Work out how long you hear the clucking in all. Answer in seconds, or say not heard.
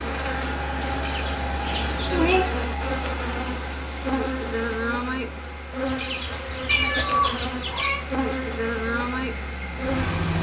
4 s.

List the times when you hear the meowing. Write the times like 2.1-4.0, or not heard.
1.6-2.5, 6.7-8.0.